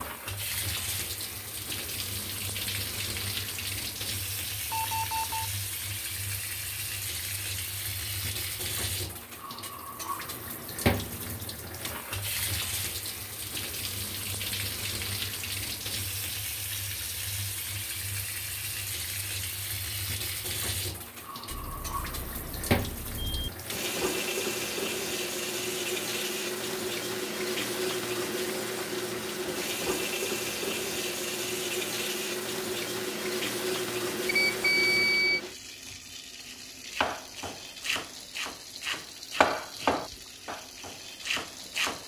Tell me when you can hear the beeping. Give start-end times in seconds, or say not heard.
4.7-5.5, 21.4-23.5, 34.2-35.4.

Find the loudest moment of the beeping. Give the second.
35 s.